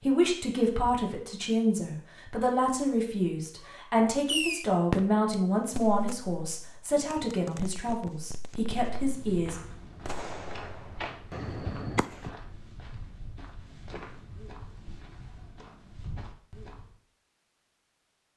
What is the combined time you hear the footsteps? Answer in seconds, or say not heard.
8 s.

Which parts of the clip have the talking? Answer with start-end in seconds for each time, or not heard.
0.0-9.6.